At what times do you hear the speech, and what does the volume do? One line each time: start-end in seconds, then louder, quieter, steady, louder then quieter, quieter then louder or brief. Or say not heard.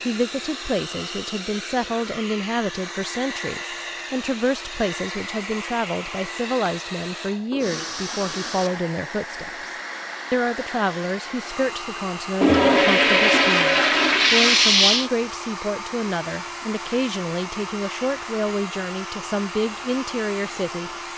0.0-9.7 steady
10.3-20.9 steady.